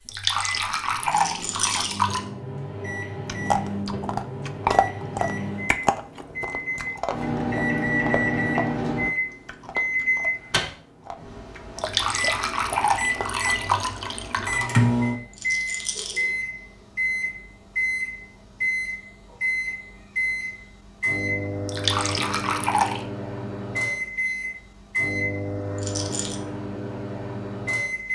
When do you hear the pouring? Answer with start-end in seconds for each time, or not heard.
0.1-2.2, 11.8-14.5, 21.6-23.1.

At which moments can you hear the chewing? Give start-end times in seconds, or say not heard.
3.2-13.8.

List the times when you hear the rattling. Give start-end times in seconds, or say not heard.
1.1-2.0, 15.3-16.2, 25.8-26.4.